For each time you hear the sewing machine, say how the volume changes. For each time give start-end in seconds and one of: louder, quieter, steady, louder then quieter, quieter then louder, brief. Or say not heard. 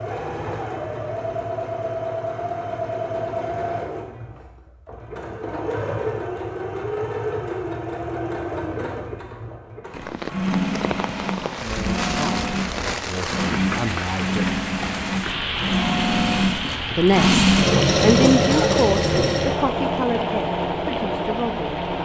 0.0-22.0 louder.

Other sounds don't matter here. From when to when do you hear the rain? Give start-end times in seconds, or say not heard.
9.9-22.0.